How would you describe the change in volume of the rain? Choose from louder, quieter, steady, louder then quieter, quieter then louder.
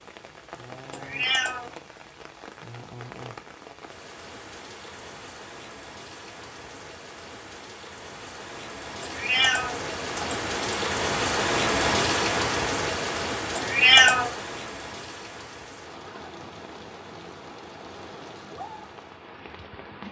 louder then quieter.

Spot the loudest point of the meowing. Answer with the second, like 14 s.
14 s.